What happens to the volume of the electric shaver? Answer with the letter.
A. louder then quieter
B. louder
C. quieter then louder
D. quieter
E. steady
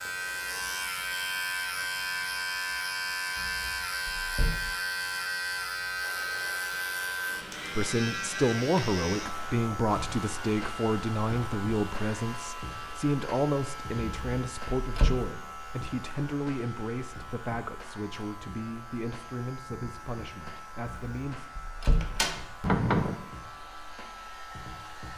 D.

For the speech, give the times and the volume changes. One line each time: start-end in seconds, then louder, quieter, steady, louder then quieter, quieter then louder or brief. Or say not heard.
7.8-21.5 quieter.